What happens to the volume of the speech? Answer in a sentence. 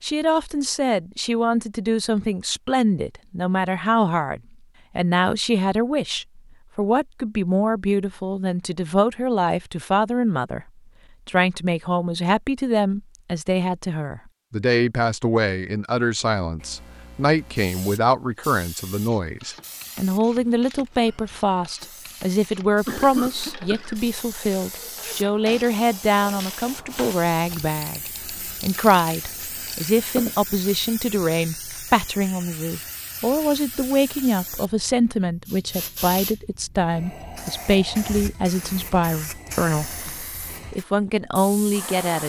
The volume of the speech stays about the same.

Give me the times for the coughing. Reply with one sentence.
You can hear the coughing from 22.9 to 24.1 s.